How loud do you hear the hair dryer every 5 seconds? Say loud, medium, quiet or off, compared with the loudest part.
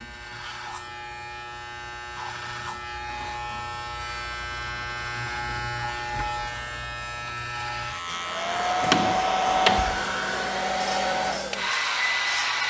off, loud, loud.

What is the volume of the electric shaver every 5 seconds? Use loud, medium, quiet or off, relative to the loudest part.
loud, loud, medium.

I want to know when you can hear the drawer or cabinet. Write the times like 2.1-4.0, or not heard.
8.8-10.1.